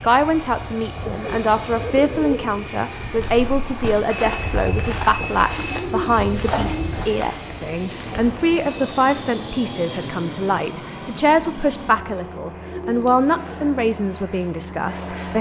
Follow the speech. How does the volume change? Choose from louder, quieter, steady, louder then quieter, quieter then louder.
steady.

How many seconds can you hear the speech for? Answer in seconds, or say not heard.
15 s.